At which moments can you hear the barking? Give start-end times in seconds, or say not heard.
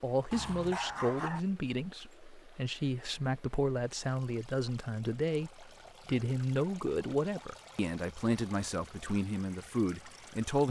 0.3-1.4.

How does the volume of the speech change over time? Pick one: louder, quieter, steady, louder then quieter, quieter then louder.
steady.